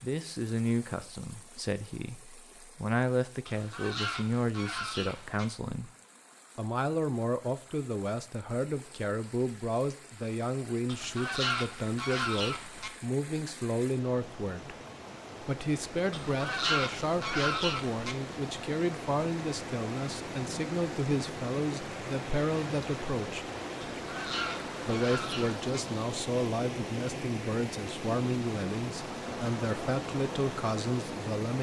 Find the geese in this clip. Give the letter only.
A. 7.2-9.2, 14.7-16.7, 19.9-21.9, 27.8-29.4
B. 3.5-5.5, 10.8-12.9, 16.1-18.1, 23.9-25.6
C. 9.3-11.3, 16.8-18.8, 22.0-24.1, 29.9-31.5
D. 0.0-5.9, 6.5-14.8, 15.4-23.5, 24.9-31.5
B.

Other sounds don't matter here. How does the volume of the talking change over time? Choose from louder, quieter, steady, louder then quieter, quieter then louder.
steady.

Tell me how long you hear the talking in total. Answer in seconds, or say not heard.
29 s.